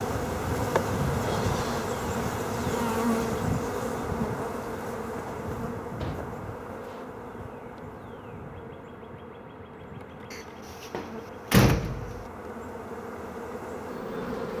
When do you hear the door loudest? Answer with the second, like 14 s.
12 s.